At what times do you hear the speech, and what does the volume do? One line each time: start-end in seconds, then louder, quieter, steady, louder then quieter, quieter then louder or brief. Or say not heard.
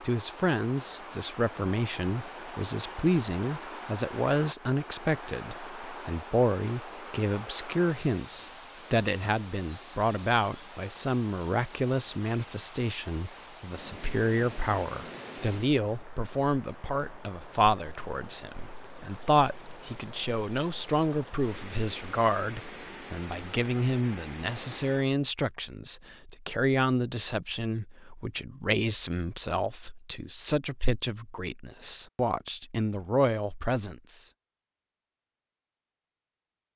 0.0-34.3 steady.